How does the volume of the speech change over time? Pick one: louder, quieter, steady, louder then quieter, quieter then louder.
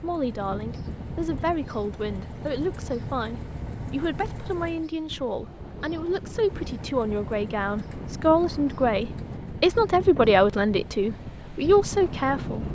louder.